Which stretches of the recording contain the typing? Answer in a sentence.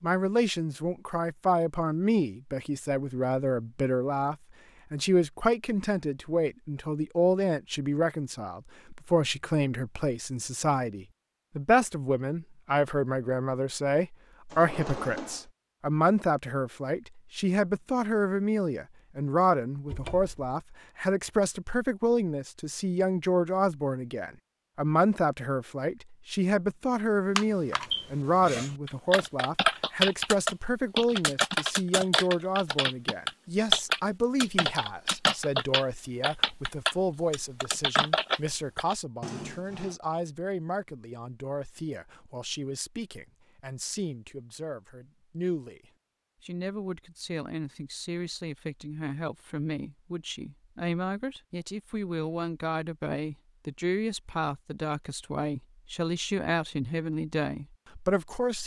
You can hear the typing from 27.4 to 39.0 s.